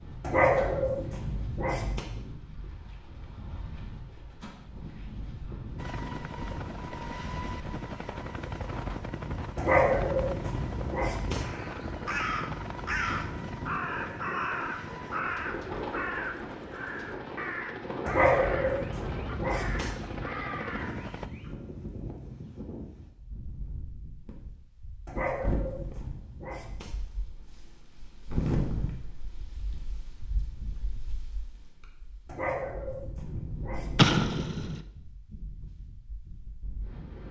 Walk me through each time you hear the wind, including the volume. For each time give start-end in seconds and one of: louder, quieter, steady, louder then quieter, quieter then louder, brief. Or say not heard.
0.0-37.2 louder then quieter.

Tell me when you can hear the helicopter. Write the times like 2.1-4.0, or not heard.
5.8-21.3.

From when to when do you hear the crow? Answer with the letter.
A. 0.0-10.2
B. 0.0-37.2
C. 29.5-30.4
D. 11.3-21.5
D.